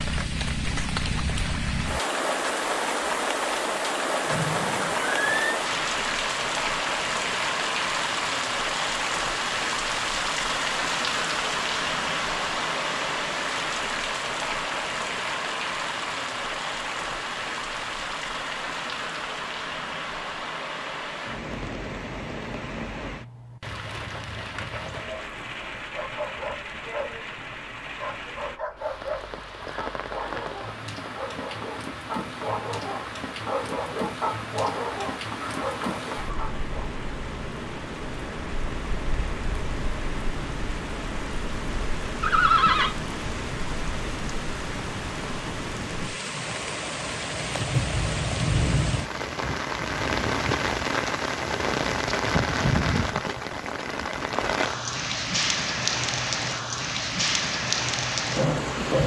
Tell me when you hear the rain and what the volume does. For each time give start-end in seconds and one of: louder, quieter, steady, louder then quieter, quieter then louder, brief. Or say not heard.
0.0-59.0 quieter then louder.